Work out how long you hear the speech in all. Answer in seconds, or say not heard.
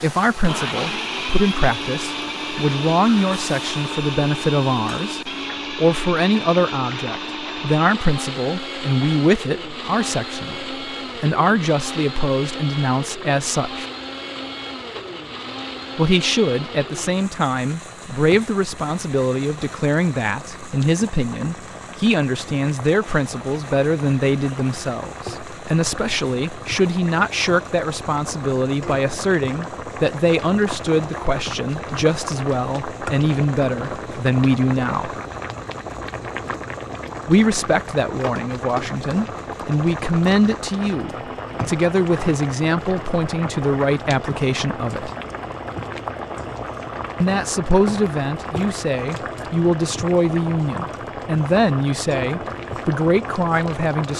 48 s.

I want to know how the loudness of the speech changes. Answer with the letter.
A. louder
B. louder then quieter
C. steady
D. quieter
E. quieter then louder
C.